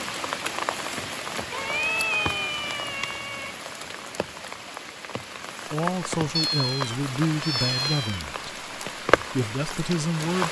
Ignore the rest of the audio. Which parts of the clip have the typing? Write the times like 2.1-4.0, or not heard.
not heard.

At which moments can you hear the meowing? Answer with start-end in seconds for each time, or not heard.
1.5-3.5, 6.3-8.2.